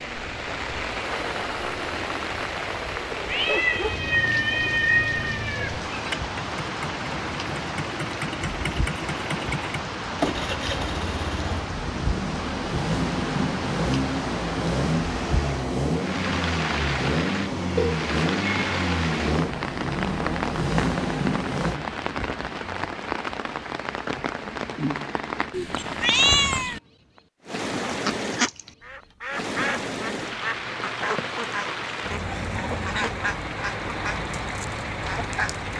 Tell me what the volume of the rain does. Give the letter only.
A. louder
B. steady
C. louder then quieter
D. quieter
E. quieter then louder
B.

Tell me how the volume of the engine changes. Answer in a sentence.
The loudness of the engine goes up.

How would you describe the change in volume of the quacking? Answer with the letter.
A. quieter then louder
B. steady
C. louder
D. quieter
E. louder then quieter
D.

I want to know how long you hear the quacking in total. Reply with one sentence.
The quacking can be heard for 8 seconds in total.